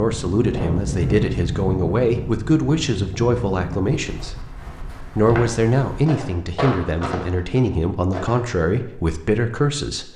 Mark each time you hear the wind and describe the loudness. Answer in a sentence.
You can hear the wind from 0.0 to 6.0 s, getting quieter.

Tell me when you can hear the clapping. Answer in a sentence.
The clapping can't be heard in this clip.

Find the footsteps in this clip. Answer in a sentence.
The footsteps can be heard from 5.0 to 8.4 s.